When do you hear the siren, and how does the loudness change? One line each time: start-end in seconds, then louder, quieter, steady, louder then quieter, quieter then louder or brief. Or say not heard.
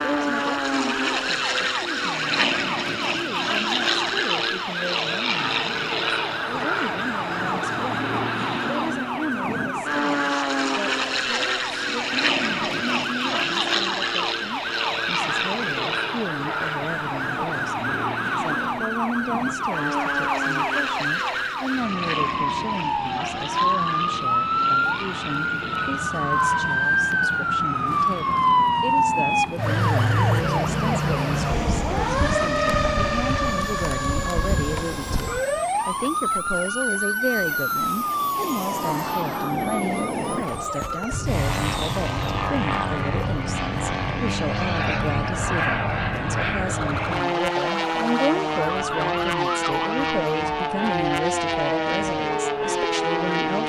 0.1-53.4 louder then quieter.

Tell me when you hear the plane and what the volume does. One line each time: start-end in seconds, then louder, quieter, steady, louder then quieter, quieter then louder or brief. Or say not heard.
0.0-53.6 quieter then louder.